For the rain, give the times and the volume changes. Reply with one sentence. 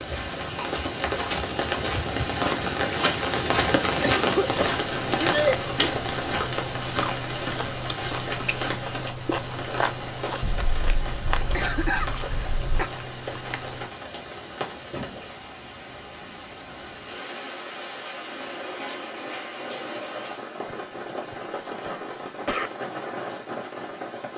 The rain can be heard from 0.0 to 24.3 s, getting quieter.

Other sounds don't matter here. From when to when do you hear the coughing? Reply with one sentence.
You can hear the coughing from 4.0 to 5.9 s, from 10.4 to 12.9 s and from 20.6 to 22.7 s.